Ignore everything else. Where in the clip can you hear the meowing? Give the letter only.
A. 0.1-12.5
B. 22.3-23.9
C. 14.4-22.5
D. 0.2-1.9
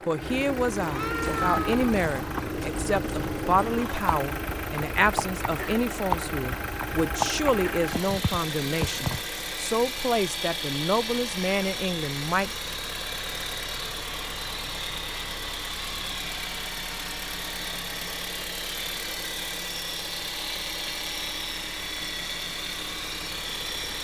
D.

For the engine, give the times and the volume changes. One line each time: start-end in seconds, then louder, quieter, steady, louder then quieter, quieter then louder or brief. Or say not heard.
0.0-23.9 steady.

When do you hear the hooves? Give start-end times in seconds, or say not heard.
1.2-9.2.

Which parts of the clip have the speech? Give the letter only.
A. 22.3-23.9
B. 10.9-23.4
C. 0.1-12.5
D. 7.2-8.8
C.